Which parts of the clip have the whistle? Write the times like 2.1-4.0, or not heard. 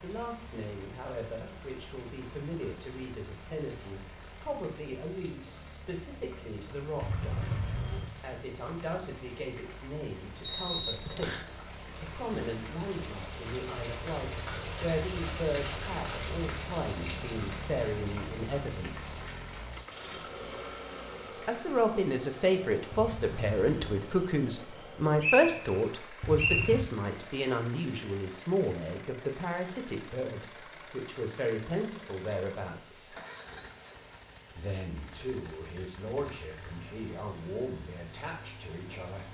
10.4-11.4, 25.2-26.7.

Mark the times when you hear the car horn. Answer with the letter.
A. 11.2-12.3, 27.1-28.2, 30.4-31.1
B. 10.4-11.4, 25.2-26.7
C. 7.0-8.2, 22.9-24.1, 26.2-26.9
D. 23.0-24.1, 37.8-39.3
C.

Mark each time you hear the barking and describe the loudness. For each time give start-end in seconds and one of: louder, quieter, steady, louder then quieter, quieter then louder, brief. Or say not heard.
not heard.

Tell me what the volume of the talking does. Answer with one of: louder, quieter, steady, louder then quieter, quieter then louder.
louder then quieter.